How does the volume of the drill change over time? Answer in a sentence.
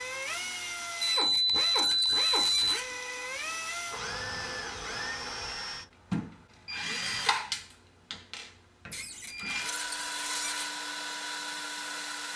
The volume of the drill stays about the same.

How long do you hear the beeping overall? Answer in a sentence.
You can hear the beeping for 2 seconds altogether.